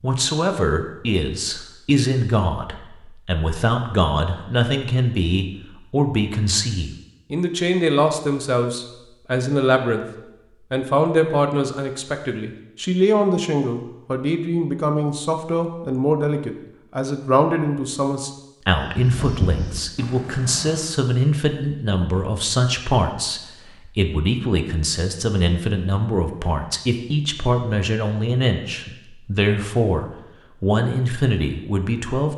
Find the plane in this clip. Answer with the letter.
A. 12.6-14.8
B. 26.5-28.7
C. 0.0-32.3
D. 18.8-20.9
D.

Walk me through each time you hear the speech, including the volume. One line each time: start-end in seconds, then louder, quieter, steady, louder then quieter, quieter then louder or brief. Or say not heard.
0.0-32.3 steady.